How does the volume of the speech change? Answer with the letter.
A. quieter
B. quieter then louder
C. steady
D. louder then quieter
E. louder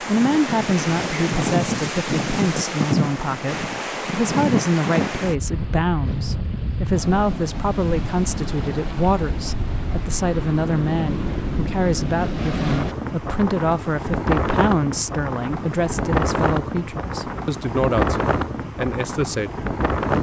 C.